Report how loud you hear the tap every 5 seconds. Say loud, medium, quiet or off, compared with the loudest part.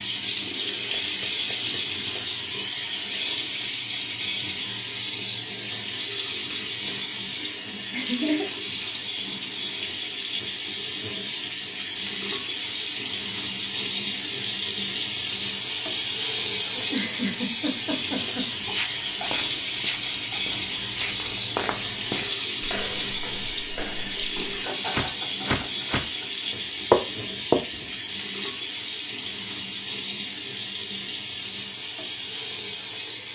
loud, loud, loud, loud, loud, loud, medium.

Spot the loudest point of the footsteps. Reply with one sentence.
The loudest moment of the footsteps is at 27 seconds.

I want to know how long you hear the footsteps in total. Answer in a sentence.
The footsteps can be heard for 9 seconds in total.